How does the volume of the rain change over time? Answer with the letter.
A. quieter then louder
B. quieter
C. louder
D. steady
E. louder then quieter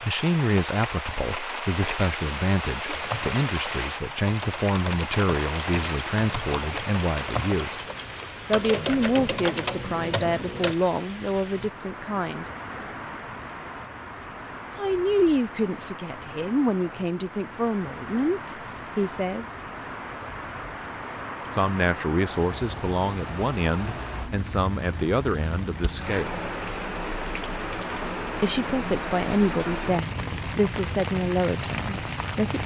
A.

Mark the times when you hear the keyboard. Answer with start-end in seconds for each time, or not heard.
2.9-10.8.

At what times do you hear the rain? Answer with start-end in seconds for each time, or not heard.
0.0-32.6.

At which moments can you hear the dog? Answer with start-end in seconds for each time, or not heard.
not heard.